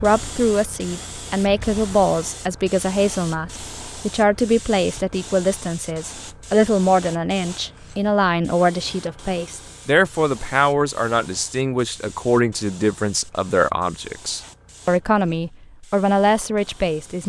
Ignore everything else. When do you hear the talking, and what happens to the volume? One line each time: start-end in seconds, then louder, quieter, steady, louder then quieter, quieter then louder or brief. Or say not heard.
0.0-17.2 steady.